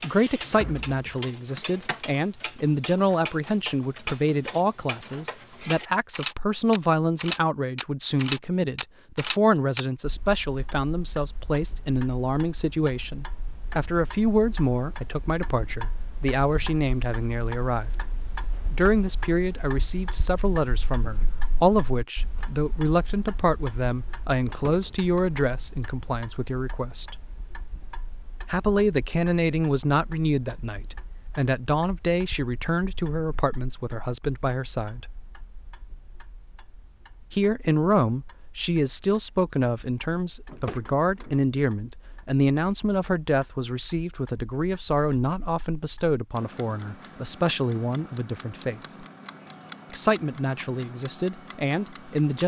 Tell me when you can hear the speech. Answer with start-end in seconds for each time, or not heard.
0.0-17.9, 18.7-27.1, 28.4-35.1, 37.3-48.8, 49.9-52.4.